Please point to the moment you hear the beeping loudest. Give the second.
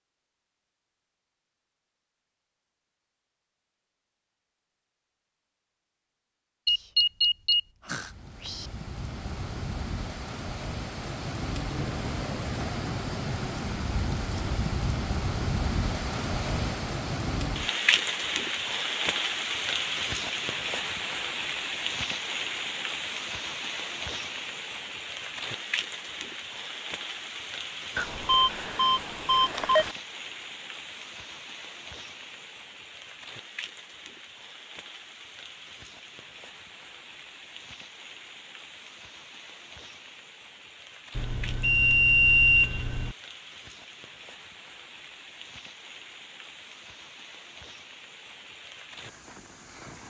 42 s.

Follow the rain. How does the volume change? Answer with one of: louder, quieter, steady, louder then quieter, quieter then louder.
quieter.